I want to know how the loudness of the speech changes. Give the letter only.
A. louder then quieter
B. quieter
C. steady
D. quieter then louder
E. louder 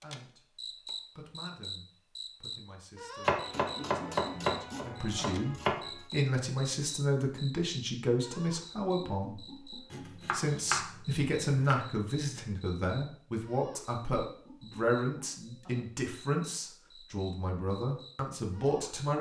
E.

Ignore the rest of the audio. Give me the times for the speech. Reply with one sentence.
The speech can be heard from 0.0 to 9.5 s and from 10.3 to 19.1 s.